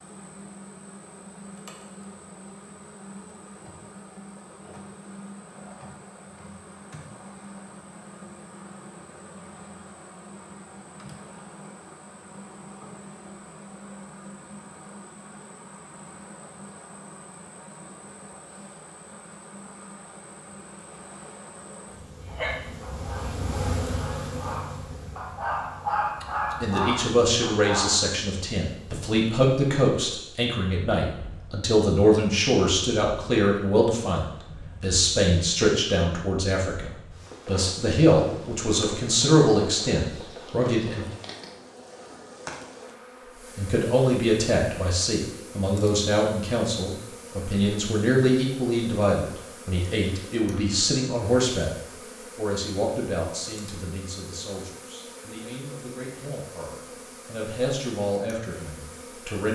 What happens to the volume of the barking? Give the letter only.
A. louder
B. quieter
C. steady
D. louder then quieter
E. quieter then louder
A.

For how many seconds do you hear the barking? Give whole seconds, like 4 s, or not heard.
6 s.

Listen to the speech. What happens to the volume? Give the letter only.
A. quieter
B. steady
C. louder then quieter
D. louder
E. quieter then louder
A.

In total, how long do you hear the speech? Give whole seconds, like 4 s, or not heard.
30 s.